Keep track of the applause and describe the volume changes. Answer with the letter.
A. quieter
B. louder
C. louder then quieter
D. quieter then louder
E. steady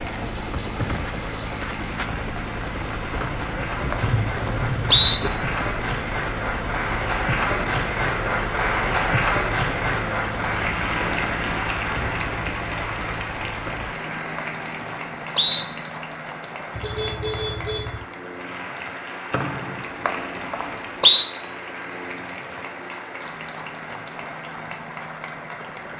C.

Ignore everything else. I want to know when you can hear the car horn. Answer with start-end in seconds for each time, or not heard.
4.0-5.2, 16.7-18.1.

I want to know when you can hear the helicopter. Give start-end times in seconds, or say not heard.
0.0-25.9.